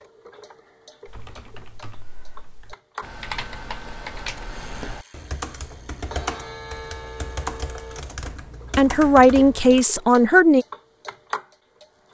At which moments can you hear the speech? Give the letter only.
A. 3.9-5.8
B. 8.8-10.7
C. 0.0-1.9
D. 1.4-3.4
B.